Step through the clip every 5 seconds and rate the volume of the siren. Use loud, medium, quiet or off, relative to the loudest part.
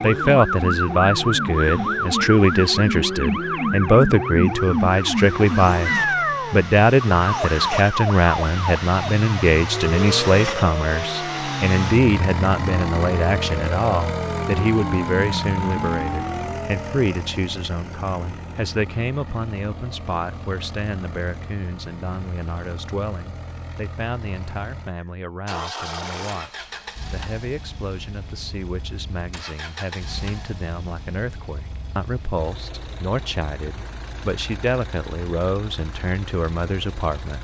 loud, loud, medium, medium, off, off, off, off.